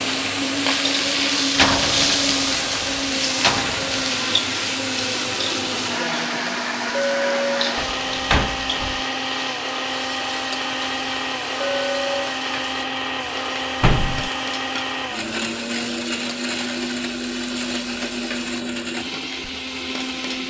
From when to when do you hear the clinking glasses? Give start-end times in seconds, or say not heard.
6.9-7.7, 11.6-12.3.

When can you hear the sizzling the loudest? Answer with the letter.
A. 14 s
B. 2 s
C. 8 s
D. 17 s
B.